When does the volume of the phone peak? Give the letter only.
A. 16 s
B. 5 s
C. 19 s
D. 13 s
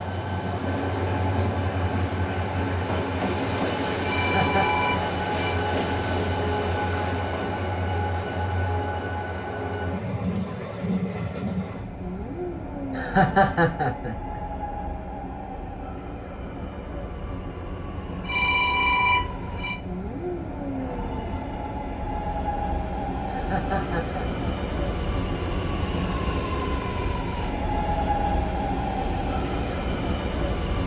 C.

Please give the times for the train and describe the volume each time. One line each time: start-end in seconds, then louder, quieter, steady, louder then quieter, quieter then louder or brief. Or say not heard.
0.0-30.8 quieter then louder.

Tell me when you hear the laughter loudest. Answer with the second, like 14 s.
13 s.